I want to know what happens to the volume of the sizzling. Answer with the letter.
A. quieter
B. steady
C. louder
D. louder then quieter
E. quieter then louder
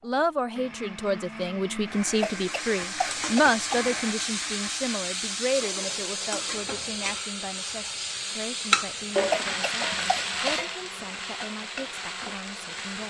D.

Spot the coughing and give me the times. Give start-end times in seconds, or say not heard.
2.2-3.9, 9.3-10.7.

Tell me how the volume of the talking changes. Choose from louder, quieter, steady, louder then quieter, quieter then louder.
quieter.